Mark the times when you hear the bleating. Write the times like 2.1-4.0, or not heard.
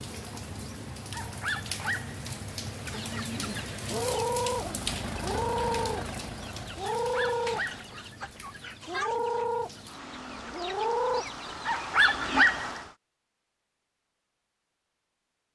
not heard.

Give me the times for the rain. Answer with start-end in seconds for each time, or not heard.
0.0-12.9.